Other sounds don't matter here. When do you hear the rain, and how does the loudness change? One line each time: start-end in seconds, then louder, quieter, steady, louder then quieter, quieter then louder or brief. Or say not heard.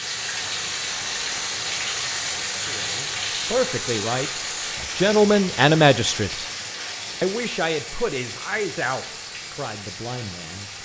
0.0-10.8 quieter.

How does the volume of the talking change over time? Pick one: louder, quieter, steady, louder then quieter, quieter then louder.
louder then quieter.